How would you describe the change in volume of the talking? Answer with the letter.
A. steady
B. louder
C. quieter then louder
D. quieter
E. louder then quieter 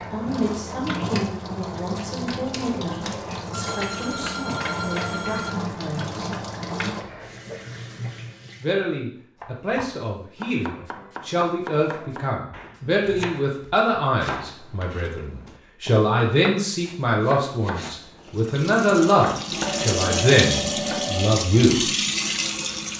B.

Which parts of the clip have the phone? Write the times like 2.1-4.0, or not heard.
3.5-5.5, 19.6-21.4.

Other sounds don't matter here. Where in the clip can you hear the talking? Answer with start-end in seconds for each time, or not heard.
0.1-6.2, 8.6-21.9.